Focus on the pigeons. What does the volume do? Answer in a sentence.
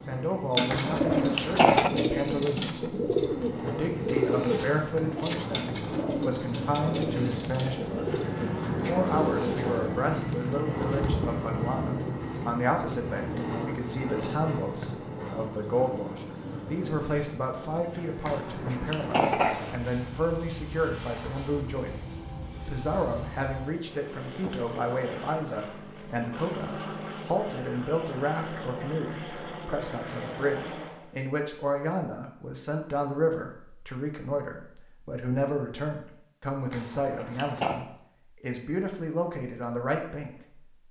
The loudness of the pigeons goes down.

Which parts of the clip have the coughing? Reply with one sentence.
You can hear the coughing from 0.7 to 1.9 s, from 18.2 to 19.8 s and from 36.7 to 37.9 s.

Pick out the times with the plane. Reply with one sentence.
The plane can be heard from 0.0 to 31.2 s.